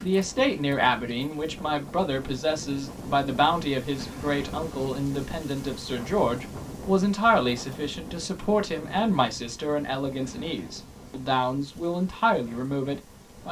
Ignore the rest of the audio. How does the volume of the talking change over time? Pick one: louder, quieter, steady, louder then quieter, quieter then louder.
steady.